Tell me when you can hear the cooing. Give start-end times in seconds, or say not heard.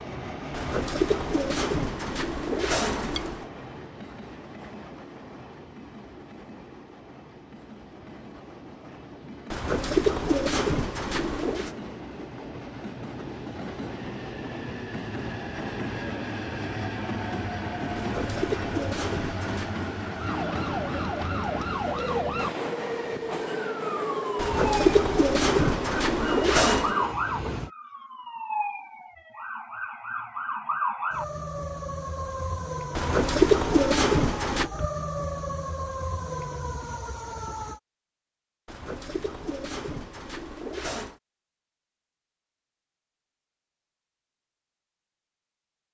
0.5-3.5, 9.5-11.7, 17.9-19.8, 24.4-26.9, 33.0-34.7, 38.6-41.1.